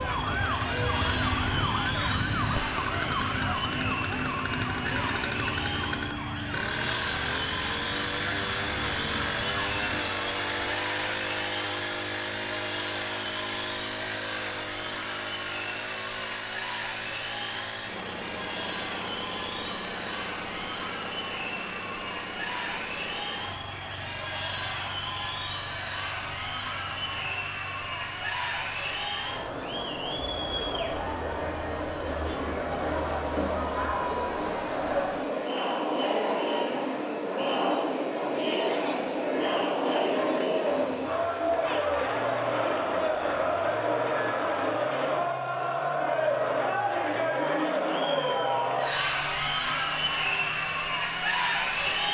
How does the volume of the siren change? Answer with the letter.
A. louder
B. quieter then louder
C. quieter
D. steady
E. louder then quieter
C.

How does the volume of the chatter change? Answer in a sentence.
The volume of the chatter goes up.